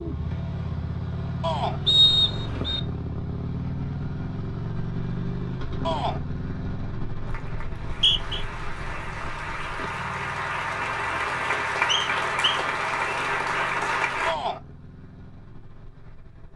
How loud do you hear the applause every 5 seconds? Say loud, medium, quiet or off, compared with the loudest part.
off, medium, loud, off.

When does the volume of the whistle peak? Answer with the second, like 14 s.
2 s.